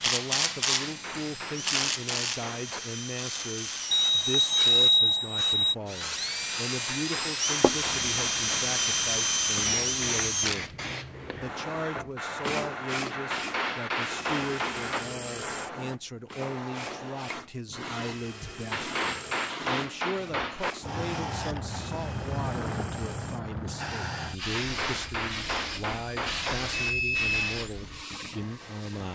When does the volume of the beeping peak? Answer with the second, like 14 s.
5 s.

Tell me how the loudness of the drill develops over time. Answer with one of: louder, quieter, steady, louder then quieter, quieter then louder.
louder then quieter.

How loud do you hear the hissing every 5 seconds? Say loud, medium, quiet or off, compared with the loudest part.
medium, loud, loud, loud, loud, loud.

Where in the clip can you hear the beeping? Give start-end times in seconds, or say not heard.
3.9-5.8, 26.9-27.4.